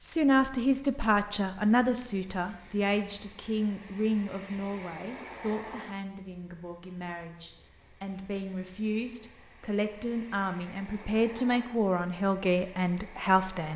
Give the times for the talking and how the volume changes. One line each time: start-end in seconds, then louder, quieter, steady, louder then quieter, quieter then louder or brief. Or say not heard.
0.0-13.7 quieter then louder.